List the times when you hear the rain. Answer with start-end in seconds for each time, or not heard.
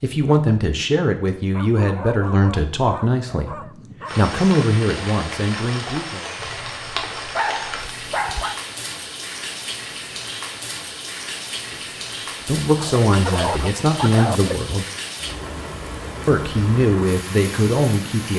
4.0-18.3.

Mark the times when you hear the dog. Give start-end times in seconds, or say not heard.
1.5-4.2, 6.3-8.6, 12.8-14.6.